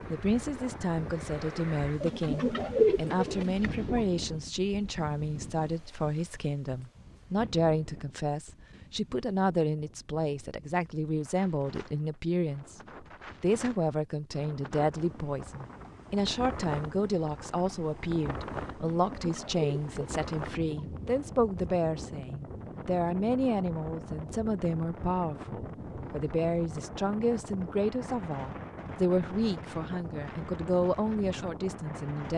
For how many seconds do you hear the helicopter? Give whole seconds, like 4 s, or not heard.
not heard.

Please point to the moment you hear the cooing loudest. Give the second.
3 s.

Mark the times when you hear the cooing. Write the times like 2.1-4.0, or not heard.
2.0-4.0, 18.9-20.9.